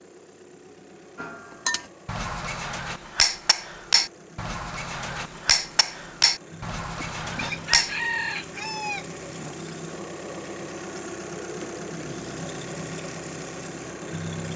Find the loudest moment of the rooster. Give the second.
8 s.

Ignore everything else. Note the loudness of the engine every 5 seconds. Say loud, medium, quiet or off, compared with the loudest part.
quiet, medium, loud.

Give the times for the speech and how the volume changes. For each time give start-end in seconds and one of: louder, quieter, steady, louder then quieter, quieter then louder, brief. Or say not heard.
not heard.